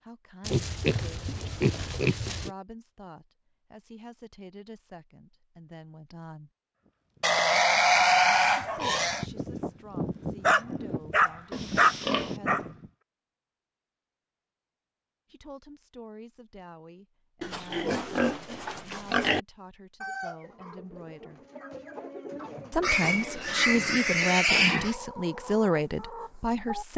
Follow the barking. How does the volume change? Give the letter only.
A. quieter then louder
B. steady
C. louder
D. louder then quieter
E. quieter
C.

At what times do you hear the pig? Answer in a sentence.
You can hear the pig from 0.4 to 2.5 s, from 7.2 to 9.2 s, from 11.5 to 12.3 s, from 17.4 to 19.4 s and from 22.8 to 24.9 s.